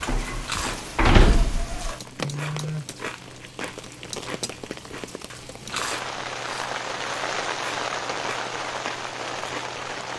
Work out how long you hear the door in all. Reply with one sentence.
You can hear the door for 2 seconds altogether.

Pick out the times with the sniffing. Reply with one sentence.
The sniffing can't be heard in this clip.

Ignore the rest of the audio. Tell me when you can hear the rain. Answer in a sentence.
You can hear the rain from 0.0 to 10.1 s.